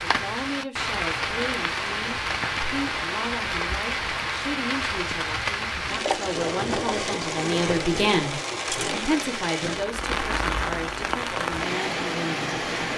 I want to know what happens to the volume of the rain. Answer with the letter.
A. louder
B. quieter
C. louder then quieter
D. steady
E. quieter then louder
D.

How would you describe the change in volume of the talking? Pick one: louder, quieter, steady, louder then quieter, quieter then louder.
louder then quieter.